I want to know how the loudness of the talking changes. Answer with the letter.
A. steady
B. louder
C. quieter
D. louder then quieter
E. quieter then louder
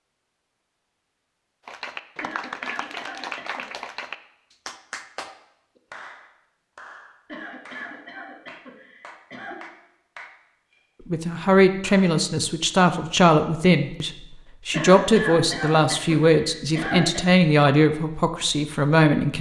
A.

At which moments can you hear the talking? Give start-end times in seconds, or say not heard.
11.1-19.3.